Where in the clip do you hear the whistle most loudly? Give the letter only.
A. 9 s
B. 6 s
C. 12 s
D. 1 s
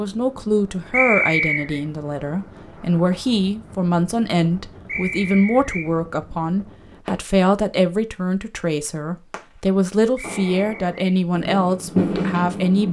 D.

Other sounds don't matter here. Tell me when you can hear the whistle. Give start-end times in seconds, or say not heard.
0.9-1.8, 4.8-5.9, 10.2-10.9.